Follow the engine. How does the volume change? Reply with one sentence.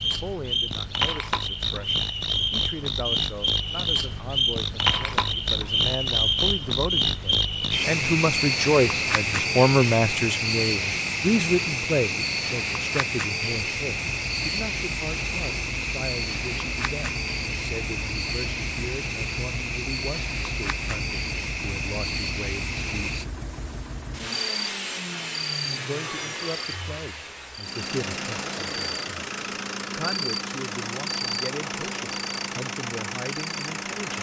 The loudness of the engine goes up.